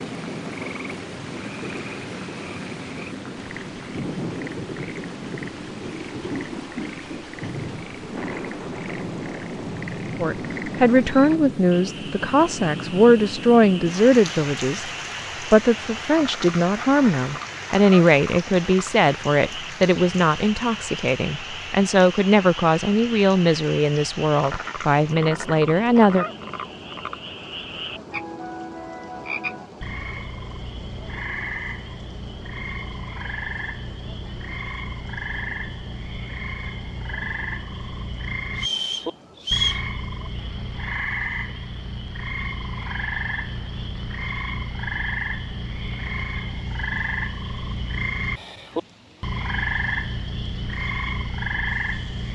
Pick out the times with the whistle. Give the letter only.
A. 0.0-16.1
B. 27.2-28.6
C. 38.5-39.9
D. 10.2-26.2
C.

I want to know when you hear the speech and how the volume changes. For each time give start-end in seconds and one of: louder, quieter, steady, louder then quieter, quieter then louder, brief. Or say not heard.
10.2-26.2 steady.